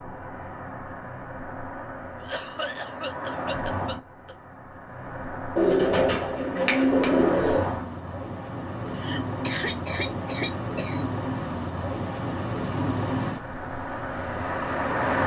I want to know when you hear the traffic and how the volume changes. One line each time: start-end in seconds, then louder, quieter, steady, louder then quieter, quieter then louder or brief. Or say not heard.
0.0-15.2 louder.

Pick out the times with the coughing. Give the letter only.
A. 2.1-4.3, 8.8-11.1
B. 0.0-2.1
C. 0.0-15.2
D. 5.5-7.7
A.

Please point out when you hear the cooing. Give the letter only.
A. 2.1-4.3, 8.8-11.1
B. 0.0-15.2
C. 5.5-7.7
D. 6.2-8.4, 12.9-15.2
C.